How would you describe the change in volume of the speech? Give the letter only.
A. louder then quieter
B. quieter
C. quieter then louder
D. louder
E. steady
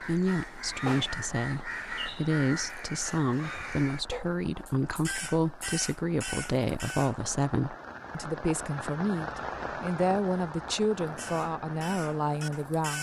E.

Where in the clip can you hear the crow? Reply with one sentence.
The crow can be heard from 0.0 to 7.3 s and from 11.0 to 12.9 s.